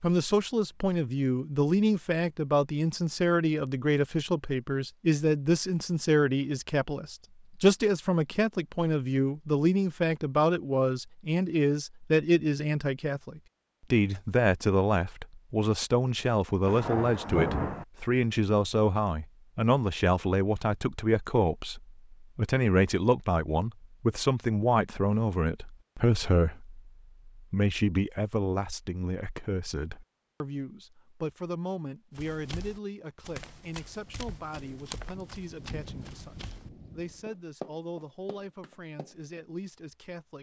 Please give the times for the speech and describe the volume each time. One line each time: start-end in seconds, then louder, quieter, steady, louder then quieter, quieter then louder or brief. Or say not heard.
0.0-40.3 quieter.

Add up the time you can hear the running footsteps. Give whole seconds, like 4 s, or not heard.
7 s.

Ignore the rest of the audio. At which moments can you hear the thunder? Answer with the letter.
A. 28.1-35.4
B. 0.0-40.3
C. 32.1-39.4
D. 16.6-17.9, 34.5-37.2
D.